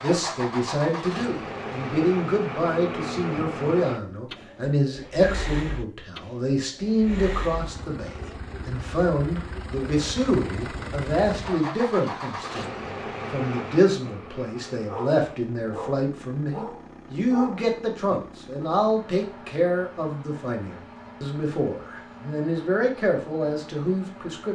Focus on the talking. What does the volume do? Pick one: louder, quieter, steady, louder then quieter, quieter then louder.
steady.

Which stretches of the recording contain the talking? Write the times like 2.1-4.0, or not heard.
0.0-24.4.